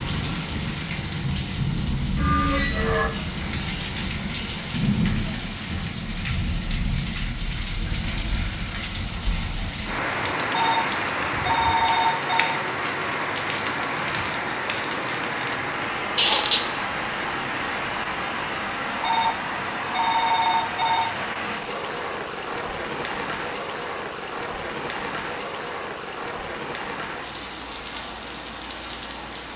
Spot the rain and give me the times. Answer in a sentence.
The rain can be heard from 0.0 to 29.5 s.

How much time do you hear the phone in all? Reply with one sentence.
You can hear the phone for 4 seconds altogether.